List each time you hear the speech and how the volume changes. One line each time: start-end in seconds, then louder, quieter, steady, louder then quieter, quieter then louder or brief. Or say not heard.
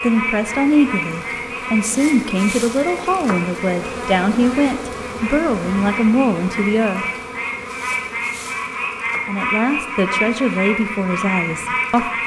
0.0-7.0 steady
9.2-12.1 brief.